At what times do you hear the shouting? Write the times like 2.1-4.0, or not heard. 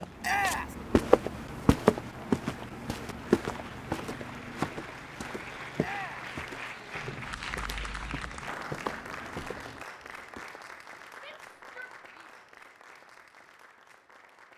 0.2-0.8, 5.8-6.3, 11.2-12.3.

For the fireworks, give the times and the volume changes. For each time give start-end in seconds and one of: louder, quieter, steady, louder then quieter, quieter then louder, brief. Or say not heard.
not heard.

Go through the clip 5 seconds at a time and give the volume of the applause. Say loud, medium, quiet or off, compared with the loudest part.
medium, loud, medium.